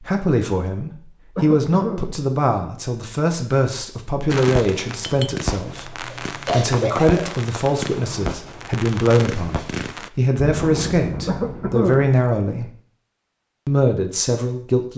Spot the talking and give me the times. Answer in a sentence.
You can hear the talking from 0.0 to 12.7 s and from 13.7 to 14.9 s.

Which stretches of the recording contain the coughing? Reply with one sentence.
You can hear the coughing from 1.4 to 2.0 s, from 6.1 to 7.2 s and from 11.2 to 12.1 s.